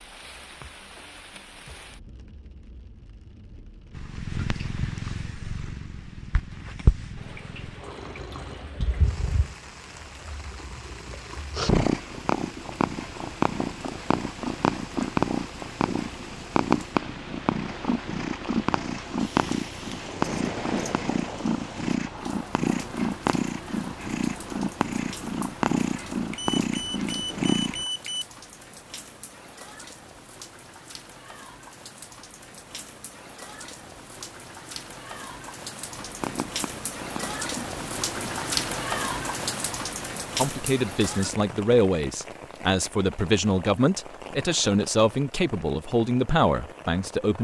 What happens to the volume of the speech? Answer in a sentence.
The loudness of the speech stays about the same.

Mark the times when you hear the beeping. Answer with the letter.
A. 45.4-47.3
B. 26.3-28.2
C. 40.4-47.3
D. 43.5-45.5
B.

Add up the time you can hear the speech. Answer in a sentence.
You can hear the speech for 7 seconds altogether.